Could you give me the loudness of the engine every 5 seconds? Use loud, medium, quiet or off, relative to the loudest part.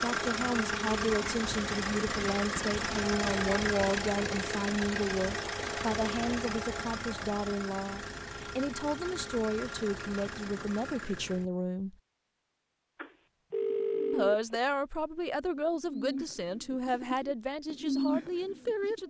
loud, medium, medium, off.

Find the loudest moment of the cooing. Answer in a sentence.
The loudest moment of the cooing is at 18 seconds.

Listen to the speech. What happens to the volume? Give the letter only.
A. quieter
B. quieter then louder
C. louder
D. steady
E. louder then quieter
D.